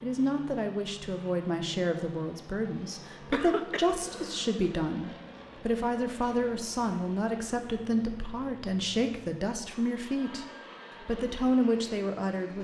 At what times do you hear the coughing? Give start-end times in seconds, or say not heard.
3.3-4.5.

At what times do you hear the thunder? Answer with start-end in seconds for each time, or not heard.
not heard.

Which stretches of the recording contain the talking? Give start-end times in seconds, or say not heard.
0.0-12.5.